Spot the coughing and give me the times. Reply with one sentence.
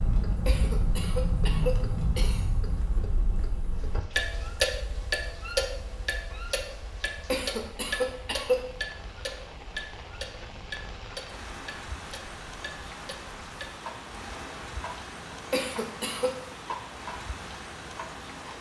The coughing can be heard from 0.5 to 2.7 s, from 7.2 to 8.6 s and from 15.5 to 16.3 s.